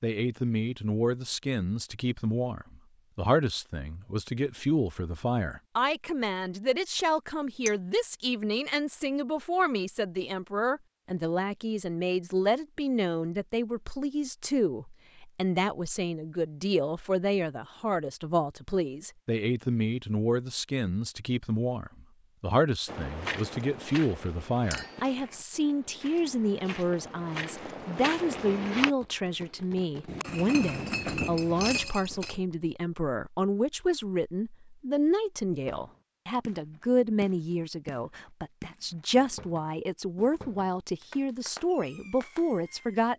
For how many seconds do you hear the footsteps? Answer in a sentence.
The footsteps can be heard for 6 seconds in total.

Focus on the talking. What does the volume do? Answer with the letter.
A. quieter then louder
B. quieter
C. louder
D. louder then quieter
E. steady
E.